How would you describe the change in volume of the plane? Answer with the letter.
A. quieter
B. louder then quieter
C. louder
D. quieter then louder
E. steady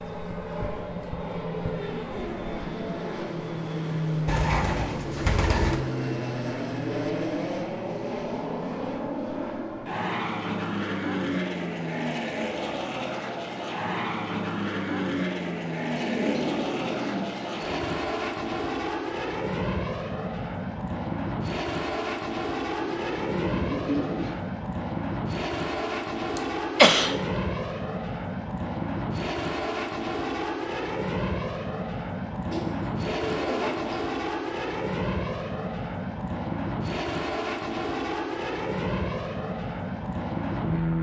E.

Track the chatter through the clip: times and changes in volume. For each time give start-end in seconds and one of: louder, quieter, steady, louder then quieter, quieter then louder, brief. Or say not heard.
not heard.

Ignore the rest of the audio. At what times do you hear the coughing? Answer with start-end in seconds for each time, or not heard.
26.4-27.1.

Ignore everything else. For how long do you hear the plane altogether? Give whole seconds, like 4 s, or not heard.
41 s.